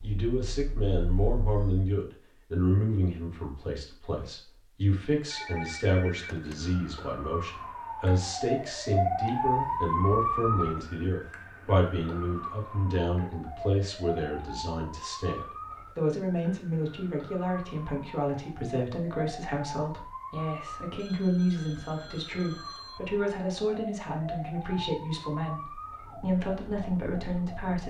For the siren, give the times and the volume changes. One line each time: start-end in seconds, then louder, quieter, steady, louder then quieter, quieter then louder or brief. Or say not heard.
0.0-1.9 brief
5.2-27.8 quieter.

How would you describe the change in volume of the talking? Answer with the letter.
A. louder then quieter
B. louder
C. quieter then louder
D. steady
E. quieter
D.